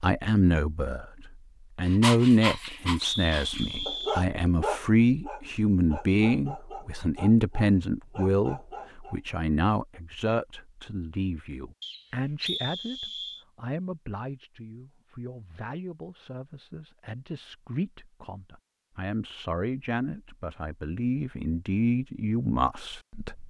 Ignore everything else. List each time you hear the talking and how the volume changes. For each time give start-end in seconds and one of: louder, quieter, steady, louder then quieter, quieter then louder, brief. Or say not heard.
0.0-23.4 quieter then louder.